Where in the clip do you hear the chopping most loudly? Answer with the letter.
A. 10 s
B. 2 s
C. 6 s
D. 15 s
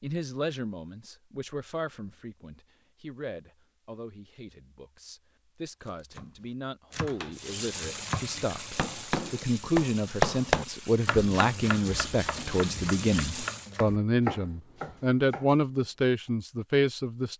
A.